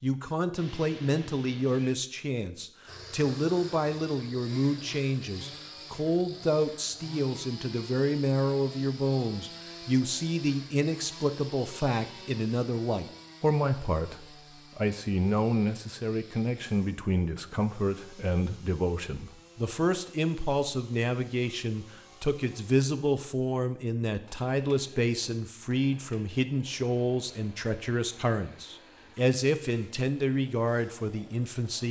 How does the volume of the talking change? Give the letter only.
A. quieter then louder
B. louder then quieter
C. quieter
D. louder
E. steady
E.